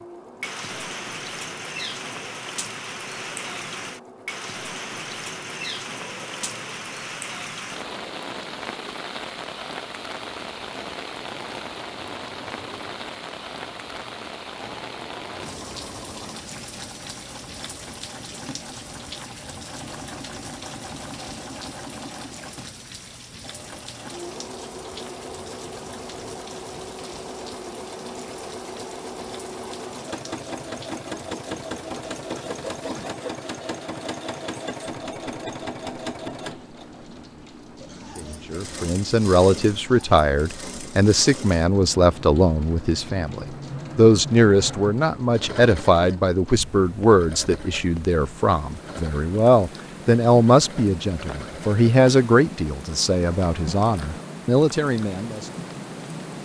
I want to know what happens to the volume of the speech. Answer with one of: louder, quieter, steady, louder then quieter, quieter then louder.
steady.